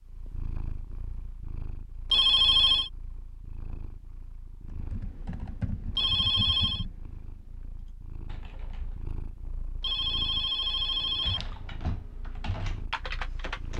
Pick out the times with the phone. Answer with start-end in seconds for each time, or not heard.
2.1-2.9, 6.0-6.8, 9.8-11.4.